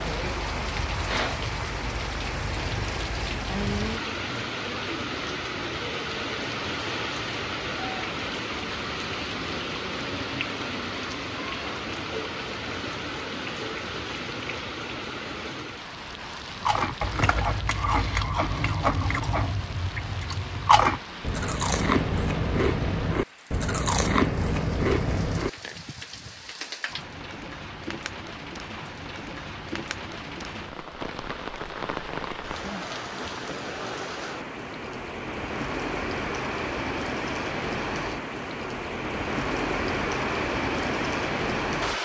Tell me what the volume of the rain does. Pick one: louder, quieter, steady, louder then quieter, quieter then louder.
quieter then louder.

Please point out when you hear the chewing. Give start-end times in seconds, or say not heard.
16.6-25.8.